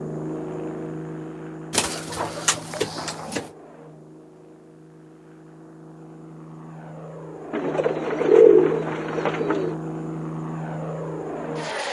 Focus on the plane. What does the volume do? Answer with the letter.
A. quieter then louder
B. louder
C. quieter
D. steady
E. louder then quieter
A.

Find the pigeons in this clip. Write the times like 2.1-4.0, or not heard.
1.7-3.5, 7.5-9.8.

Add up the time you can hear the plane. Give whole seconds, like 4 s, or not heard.
12 s.